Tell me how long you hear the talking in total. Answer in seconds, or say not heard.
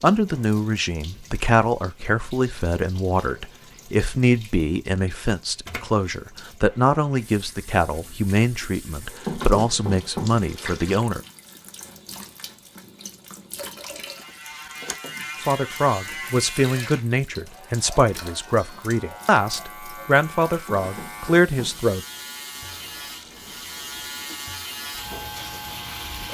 18 s.